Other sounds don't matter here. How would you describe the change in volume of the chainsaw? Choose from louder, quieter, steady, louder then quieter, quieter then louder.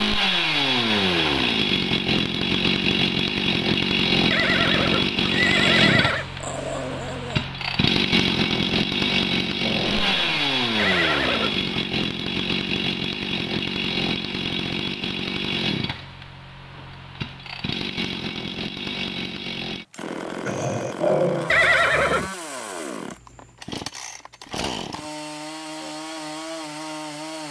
quieter.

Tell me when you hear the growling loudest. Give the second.
21 s.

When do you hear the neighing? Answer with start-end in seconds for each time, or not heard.
4.3-6.2, 10.8-11.7, 21.5-22.3.